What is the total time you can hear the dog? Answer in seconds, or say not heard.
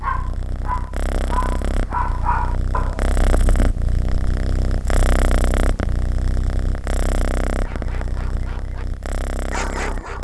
5 s.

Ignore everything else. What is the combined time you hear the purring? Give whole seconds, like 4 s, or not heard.
10 s.